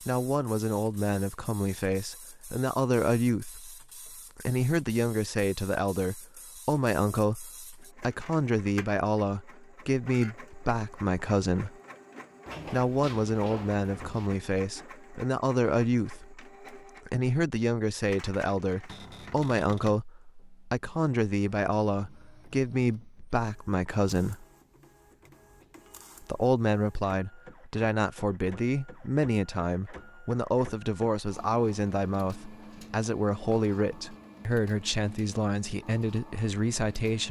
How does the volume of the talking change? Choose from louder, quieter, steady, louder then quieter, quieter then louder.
steady.